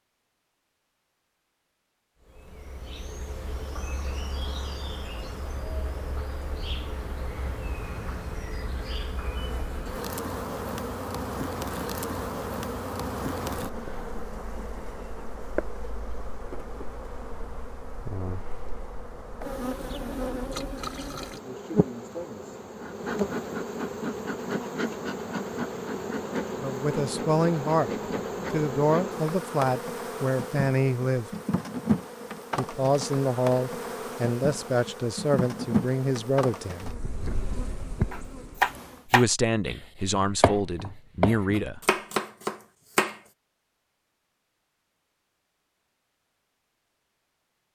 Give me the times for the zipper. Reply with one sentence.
You can't hear the zipper here.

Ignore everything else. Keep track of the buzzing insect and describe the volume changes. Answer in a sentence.
The loudness of the buzzing insect goes up.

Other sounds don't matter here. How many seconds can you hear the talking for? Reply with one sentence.
You can hear the talking for 11 seconds altogether.